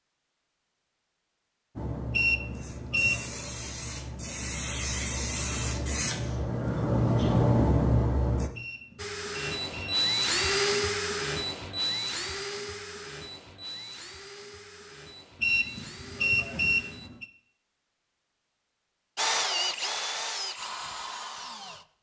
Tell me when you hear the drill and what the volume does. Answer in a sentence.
You can hear the drill from 8.9 to 17.1 s, getting quieter; and briefly from 19.1 to 21.9 s.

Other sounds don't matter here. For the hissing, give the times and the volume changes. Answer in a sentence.
The hissing can be heard from 1.8 to 8.5 s, getting louder.